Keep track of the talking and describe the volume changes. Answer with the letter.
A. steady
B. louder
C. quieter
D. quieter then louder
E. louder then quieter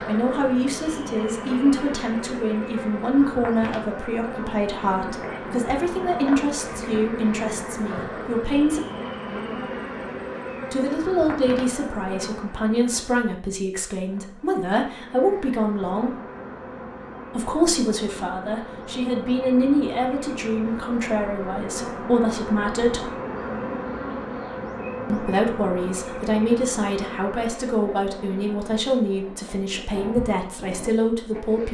A.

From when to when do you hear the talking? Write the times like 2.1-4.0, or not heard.
0.1-8.8, 10.7-16.2, 17.4-23.1, 25.1-31.6.